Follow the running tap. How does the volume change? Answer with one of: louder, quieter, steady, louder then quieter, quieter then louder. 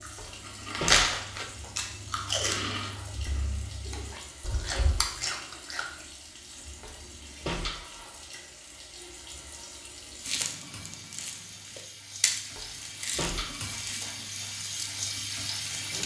louder.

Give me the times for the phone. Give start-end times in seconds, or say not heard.
not heard.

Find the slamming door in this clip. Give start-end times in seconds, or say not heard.
0.1-1.7, 6.8-8.1, 12.6-14.1.